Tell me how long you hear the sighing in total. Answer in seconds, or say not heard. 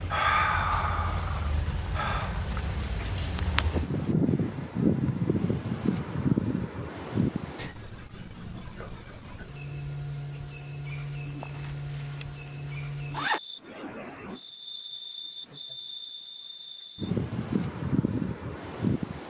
2 s.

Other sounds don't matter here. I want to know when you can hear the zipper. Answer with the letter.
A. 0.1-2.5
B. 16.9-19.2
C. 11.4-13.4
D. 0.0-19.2
C.